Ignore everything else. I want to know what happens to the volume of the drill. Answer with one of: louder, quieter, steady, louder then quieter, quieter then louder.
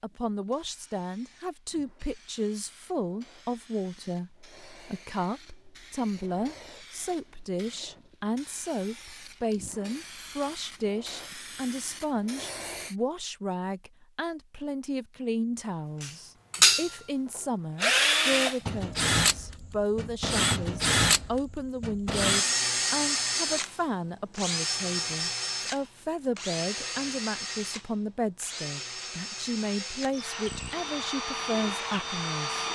quieter.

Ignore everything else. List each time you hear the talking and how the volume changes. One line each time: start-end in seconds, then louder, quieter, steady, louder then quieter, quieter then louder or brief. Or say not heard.
0.0-32.6 steady.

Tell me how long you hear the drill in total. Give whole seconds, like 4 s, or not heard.
17 s.